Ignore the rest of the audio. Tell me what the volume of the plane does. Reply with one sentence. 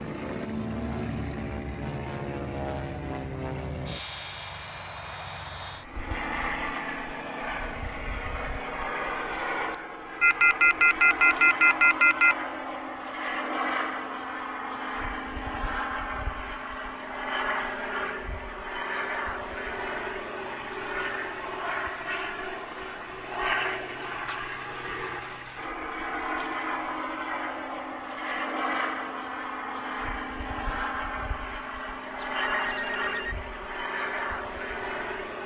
The volume of the plane stays about the same.